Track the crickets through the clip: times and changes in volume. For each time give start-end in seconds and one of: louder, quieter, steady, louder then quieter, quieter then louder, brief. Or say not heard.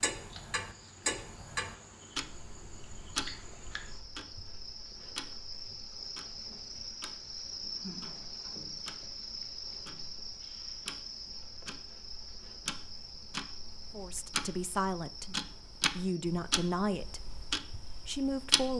0.1-18.7 louder then quieter.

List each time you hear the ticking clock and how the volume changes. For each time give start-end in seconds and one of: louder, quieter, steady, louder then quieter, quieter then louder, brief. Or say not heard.
0.0-18.7 quieter then louder.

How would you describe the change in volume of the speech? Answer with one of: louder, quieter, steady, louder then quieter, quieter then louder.
quieter then louder.